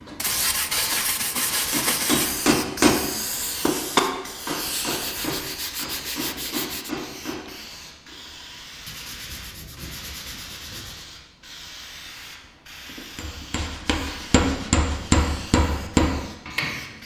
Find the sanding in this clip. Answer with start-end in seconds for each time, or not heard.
0.1-2.4, 4.7-6.9, 8.8-11.1, 12.8-15.1.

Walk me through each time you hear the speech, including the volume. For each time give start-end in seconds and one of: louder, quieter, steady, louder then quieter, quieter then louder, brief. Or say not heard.
not heard.